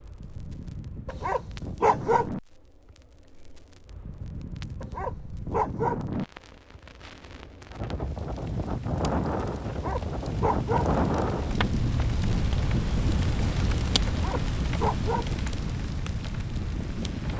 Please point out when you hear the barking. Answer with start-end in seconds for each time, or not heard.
1.1-2.3, 4.8-6.0, 9.7-10.9, 14.1-15.3.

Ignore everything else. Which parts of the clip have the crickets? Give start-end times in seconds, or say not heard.
not heard.